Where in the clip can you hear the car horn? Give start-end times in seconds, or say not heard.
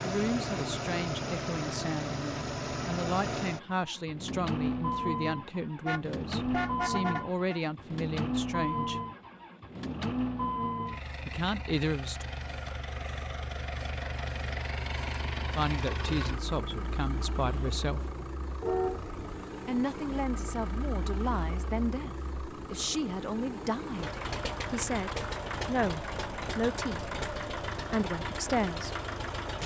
5.8-7.6, 18.6-19.1.